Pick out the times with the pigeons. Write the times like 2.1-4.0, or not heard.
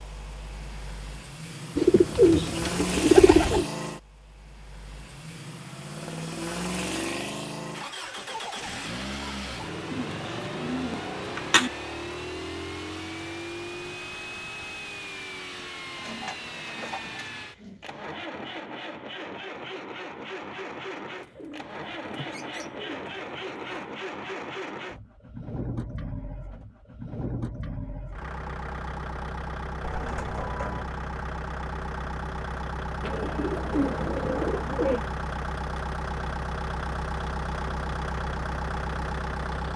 1.8-3.6, 9.9-11.7, 15.9-17.9, 21.2-23.9, 29.8-30.9, 33.0-35.0.